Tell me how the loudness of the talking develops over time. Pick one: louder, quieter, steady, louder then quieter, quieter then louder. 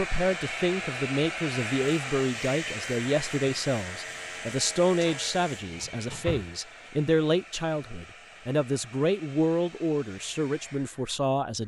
steady.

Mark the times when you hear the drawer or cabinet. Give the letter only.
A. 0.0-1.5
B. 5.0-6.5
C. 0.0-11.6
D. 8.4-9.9
B.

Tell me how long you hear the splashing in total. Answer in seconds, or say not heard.
not heard.